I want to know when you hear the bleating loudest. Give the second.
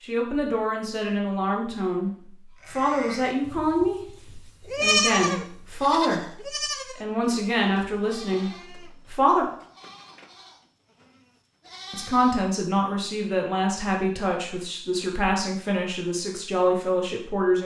5 s.